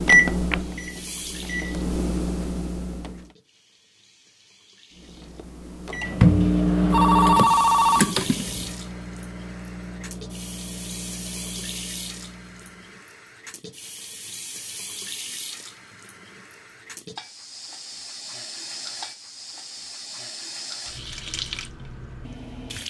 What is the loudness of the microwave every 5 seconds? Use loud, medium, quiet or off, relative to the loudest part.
loud, loud, quiet, off, off.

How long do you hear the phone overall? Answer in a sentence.
You can hear the phone for 2 seconds altogether.